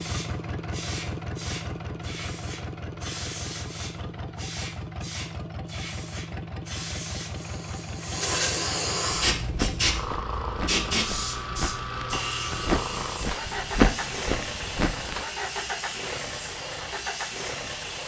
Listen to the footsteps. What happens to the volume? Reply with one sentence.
The volume of the footsteps goes up, then down.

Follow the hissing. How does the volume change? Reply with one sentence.
The volume of the hissing goes up, then down.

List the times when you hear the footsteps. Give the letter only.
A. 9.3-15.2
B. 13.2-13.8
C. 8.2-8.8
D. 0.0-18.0
A.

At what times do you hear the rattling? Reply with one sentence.
You can hear the rattling from 8.2 to 8.8 s.